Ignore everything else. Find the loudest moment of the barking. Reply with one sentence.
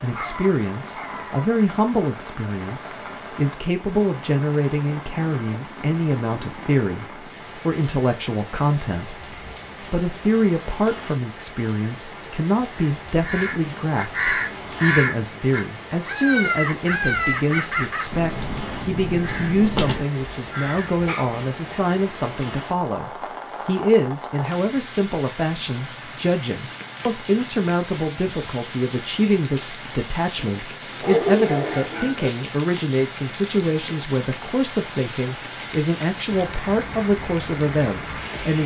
The volume of the barking peaks at 31 seconds.